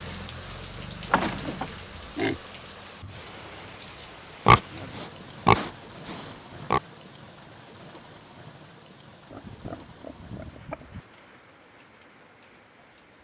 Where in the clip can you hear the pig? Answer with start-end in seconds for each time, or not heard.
1.1-2.4, 4.5-6.8, 9.3-11.1.